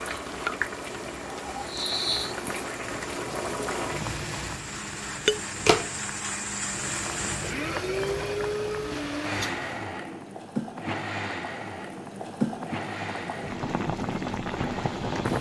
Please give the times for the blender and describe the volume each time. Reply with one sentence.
You can hear the blender from 0.0 to 15.3 s, getting louder then quieter.